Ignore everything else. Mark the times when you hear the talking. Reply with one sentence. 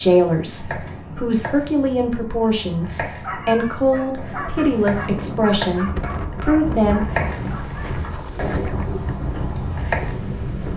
The talking can be heard from 0.0 to 7.0 s.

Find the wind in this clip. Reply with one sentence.
You can hear the wind from 0.0 to 10.7 s.